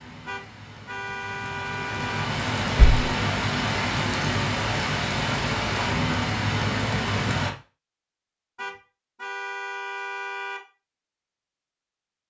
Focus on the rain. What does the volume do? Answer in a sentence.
The volume of the rain goes up.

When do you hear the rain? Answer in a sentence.
You can hear the rain from 0.0 to 7.5 s.